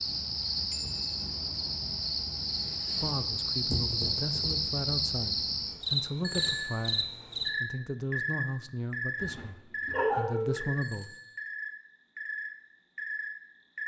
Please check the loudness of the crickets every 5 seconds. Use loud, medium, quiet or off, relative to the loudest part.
loud, loud, medium.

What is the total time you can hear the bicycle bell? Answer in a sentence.
The bicycle bell can be heard for 2 seconds in total.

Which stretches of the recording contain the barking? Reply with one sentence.
You can hear the barking from 9.2 to 10.6 s.